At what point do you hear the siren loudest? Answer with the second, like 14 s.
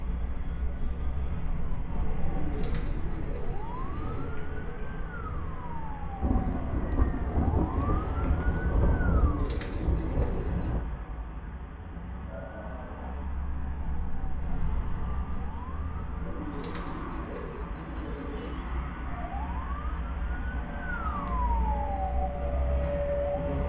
23 s.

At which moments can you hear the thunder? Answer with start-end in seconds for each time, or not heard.
6.2-10.9.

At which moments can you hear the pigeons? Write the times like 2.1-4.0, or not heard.
2.2-4.3, 9.1-10.8, 16.2-18.9.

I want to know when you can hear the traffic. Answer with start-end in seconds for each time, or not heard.
0.0-23.6.